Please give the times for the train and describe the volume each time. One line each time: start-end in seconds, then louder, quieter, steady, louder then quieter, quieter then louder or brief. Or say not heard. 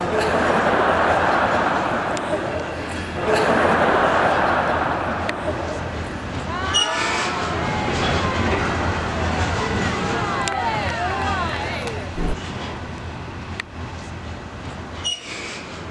0.0-15.8 louder then quieter.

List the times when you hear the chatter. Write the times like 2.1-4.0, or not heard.
0.0-12.3.